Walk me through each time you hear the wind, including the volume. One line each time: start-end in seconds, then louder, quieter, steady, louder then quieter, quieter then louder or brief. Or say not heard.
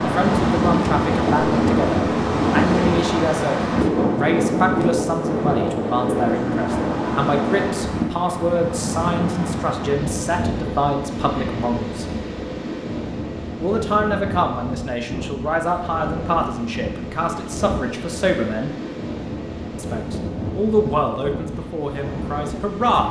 0.0-23.0 quieter.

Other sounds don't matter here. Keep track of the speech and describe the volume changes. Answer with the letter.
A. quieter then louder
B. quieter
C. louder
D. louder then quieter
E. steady
E.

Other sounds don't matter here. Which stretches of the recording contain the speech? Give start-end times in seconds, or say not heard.
0.0-12.1, 13.6-18.7, 19.8-23.0.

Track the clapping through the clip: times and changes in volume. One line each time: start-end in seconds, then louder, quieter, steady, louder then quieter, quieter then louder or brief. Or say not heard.
not heard.